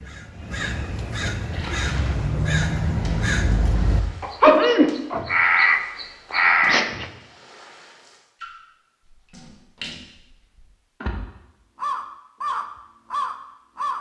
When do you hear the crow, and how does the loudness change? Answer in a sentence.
The crow can be heard from 0.0 to 7.0 s, getting louder; and briefly from 11.8 to 13.9 s.